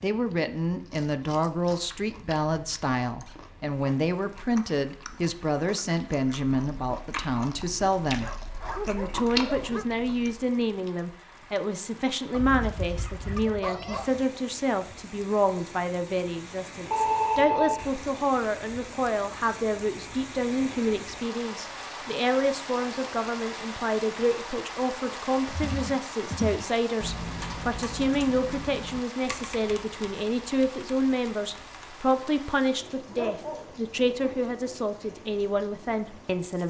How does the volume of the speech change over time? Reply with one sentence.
The volume of the speech stays about the same.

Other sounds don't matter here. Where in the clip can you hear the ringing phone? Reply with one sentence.
The ringing phone can be heard from 16.9 to 17.9 s.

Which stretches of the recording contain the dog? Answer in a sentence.
The dog can be heard from 8.2 to 9.8 s, from 12.3 to 14.2 s and from 33.1 to 34.5 s.